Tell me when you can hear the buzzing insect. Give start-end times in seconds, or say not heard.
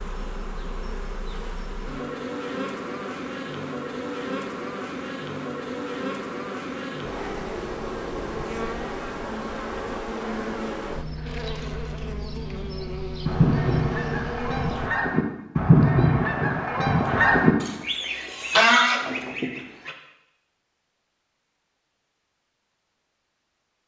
0.0-14.9.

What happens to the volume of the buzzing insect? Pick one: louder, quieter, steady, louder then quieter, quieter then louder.
steady.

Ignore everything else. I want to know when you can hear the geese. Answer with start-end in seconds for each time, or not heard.
13.2-19.9.